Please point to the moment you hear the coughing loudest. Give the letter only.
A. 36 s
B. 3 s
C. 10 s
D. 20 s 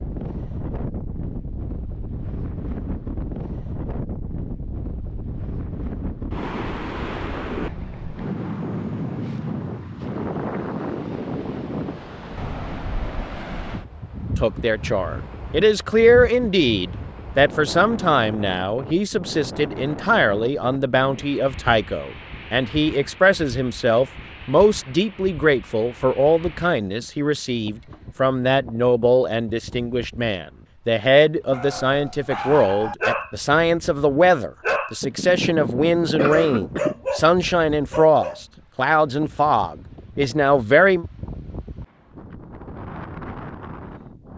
A.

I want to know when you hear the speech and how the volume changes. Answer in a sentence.
You can hear the speech from 14.3 to 41.0 s, at a steady volume.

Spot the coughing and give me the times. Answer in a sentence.
You can hear the coughing from 35.0 to 37.0 s.